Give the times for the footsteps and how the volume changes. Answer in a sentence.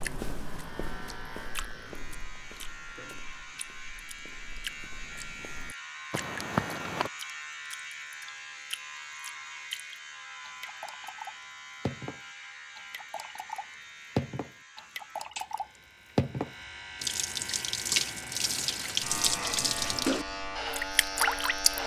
The footsteps can be heard from 0.0 to 7.1 s, getting quieter then louder.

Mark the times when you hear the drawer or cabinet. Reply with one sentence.
You can't hear the drawer or cabinet here.